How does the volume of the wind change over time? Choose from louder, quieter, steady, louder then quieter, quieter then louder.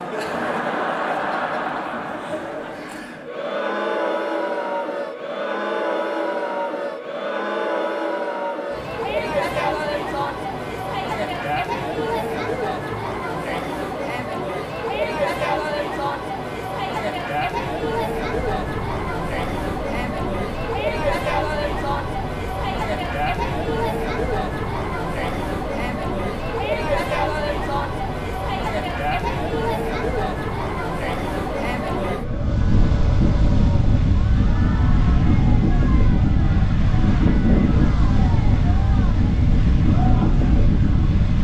louder.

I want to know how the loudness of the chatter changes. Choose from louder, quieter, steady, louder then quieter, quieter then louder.
quieter.